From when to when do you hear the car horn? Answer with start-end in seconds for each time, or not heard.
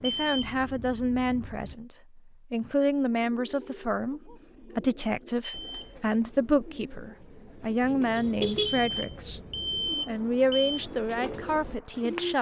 8.2-8.8.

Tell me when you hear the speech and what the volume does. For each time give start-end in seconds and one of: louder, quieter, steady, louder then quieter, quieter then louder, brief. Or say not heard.
0.0-9.4 steady
10.1-12.3 brief.